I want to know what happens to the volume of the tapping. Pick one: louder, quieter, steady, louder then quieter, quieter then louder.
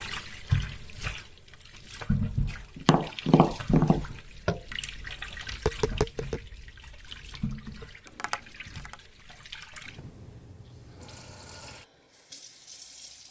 quieter then louder.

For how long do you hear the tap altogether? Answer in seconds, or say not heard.
13 s.